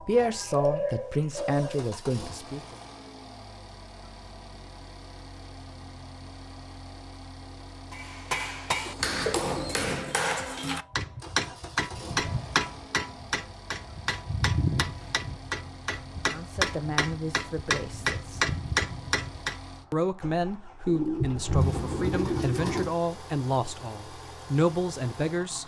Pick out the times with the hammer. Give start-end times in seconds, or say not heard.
7.9-19.6.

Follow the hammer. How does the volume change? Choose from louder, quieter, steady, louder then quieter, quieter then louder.
steady.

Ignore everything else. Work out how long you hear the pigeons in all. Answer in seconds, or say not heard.
6 s.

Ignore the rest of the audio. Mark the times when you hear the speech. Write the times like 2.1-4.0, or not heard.
0.1-2.8, 16.3-18.4, 19.9-25.6.